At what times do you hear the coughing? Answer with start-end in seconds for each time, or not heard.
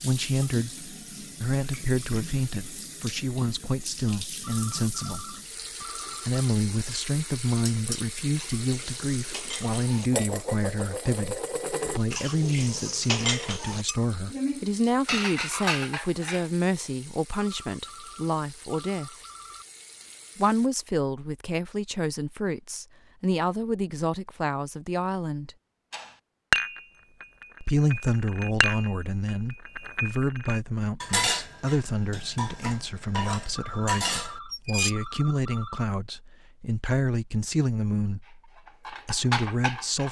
not heard.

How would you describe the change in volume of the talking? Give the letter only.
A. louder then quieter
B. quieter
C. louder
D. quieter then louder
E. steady
E.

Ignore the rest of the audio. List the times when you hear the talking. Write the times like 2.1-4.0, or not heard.
0.0-19.1, 20.4-25.6, 27.6-40.0.